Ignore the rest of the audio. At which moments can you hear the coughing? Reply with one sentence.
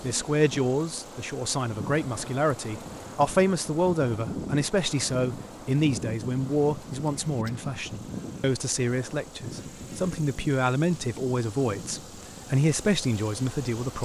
The coughing can't be heard in this clip.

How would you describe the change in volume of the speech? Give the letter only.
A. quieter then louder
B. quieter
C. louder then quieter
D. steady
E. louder
D.